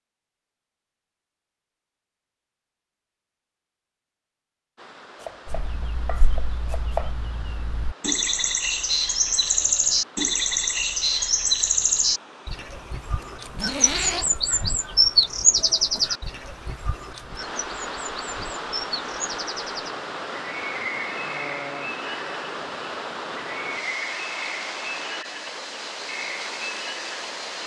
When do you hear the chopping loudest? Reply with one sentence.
The loudest moment of the chopping is at 7 seconds.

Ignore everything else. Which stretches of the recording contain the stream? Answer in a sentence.
The stream can be heard from 4.8 to 27.6 s.